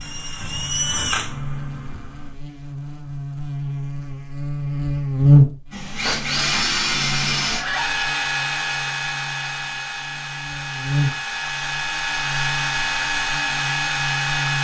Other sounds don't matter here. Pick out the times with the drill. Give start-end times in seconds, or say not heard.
0.0-2.4, 5.7-14.5.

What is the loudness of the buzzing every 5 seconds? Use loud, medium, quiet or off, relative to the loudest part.
medium, loud, medium.